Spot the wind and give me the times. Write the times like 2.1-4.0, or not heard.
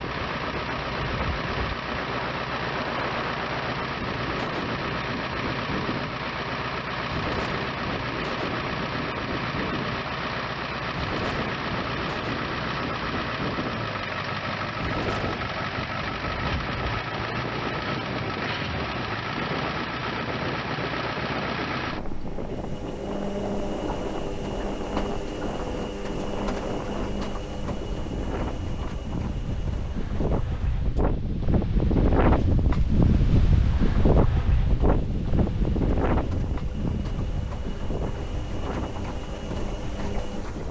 0.0-40.6.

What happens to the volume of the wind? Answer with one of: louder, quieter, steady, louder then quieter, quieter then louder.
louder.